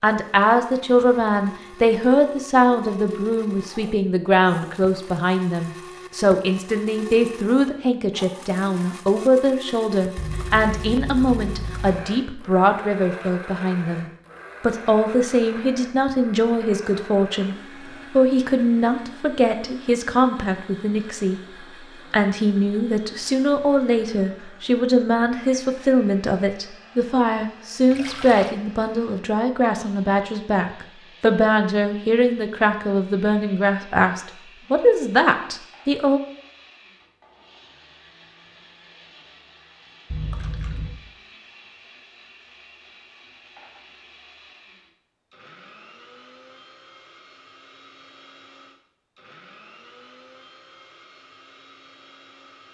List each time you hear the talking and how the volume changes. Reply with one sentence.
You can hear the talking from 0.0 to 21.4 s, at a steady volume; and from 22.1 to 36.2 s, at a steady volume.